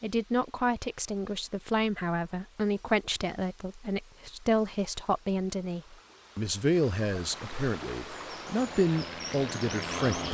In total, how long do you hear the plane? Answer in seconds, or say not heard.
2 s.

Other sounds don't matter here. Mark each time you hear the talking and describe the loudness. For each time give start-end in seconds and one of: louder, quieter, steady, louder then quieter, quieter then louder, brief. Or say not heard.
0.0-10.2 steady.